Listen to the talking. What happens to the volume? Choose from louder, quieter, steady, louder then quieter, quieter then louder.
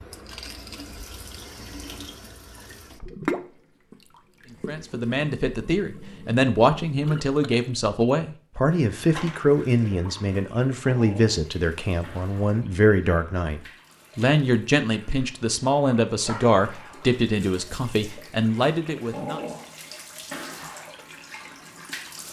steady.